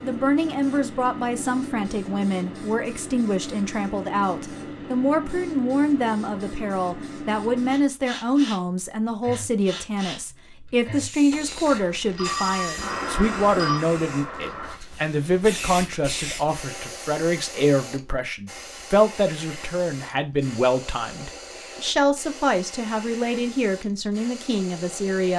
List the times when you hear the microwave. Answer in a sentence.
You can't hear the microwave here.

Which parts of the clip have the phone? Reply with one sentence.
You can hear the phone from 11.3 to 13.8 s.